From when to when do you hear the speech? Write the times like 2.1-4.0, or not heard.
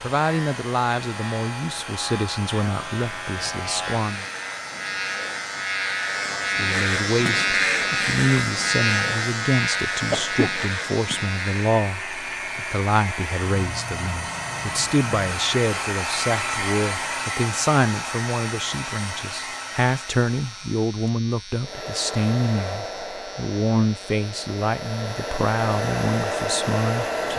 0.0-4.2, 6.5-27.3.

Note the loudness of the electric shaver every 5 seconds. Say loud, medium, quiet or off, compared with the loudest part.
medium, loud, medium, quiet, quiet, quiet.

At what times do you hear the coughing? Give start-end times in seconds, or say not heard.
10.1-10.6.